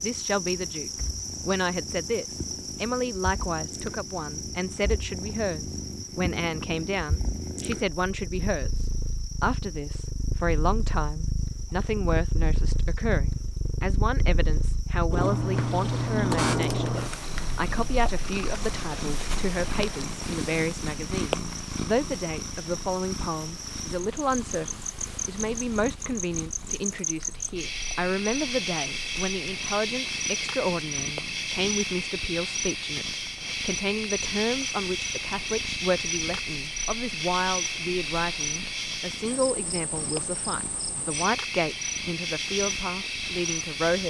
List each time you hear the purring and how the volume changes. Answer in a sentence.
The purring can be heard from 0.0 to 44.0 s, getting louder then quieter.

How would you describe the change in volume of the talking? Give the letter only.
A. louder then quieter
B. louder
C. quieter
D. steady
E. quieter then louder
D.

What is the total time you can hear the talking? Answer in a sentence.
You can hear the talking for 44 seconds altogether.